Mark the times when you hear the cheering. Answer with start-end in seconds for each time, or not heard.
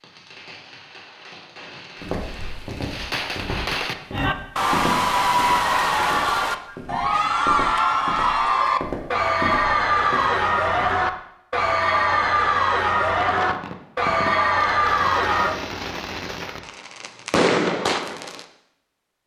4.1-15.6.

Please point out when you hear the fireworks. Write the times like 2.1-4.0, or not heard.
0.0-4.0, 13.1-18.4.